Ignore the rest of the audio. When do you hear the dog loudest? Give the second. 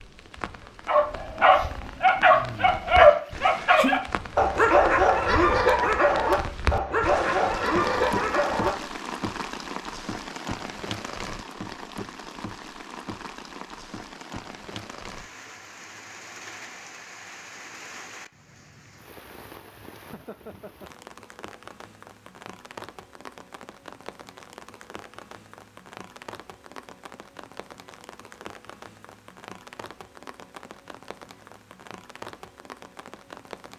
3 s.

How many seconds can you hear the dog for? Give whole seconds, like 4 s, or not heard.
8 s.